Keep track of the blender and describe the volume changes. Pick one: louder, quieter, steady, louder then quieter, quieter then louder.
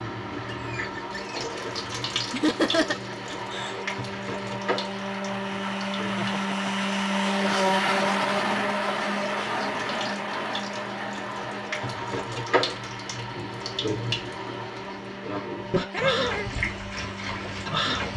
louder then quieter.